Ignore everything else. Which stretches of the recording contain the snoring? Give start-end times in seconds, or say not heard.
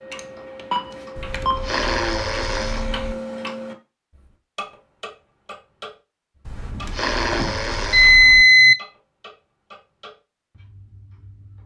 1.1-3.1, 6.5-8.4.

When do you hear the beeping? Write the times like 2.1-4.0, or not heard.
0.1-1.6, 6.8-8.8.